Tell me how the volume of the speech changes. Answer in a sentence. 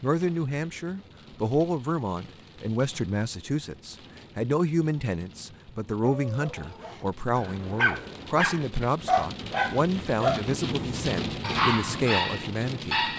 The loudness of the speech stays about the same.